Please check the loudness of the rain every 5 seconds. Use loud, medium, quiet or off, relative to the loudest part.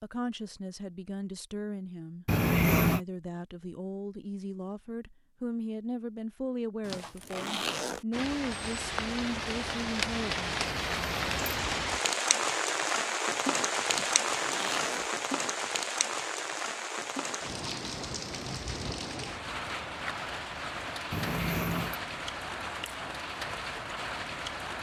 off, medium, loud, medium, medium.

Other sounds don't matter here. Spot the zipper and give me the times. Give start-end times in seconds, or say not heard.
6.8-8.1, 13.9-15.1.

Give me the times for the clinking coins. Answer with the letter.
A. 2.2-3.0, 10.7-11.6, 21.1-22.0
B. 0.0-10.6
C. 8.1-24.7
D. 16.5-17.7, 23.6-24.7
A.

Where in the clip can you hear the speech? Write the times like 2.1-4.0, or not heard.
0.0-10.6.